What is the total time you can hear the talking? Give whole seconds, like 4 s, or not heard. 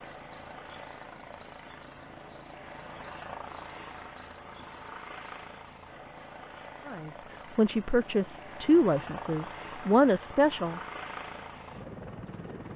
4 s.